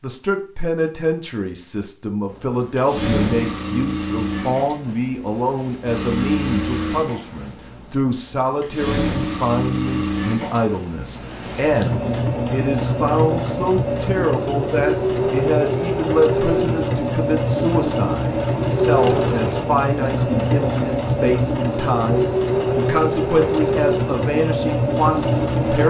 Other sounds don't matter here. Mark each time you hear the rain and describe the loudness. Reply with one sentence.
You can't hear the rain here.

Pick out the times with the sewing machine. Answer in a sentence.
The sewing machine can be heard from 2.3 to 25.8 s.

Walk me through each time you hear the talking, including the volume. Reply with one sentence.
The talking can be heard from 0.0 to 25.8 s, at a steady volume.